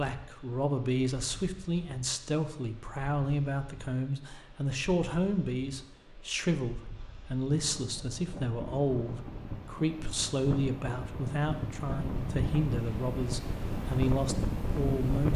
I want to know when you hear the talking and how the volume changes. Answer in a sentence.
You can hear the talking from 0.0 to 15.3 s, at a steady volume.